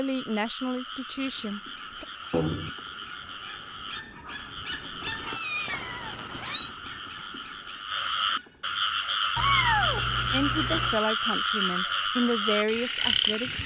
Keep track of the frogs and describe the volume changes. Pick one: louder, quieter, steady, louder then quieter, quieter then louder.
louder.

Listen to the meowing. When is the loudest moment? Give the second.
10 s.